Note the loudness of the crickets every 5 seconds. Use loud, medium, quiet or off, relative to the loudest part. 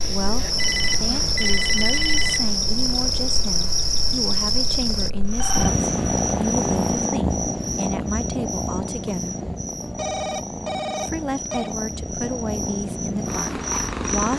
loud, medium, medium.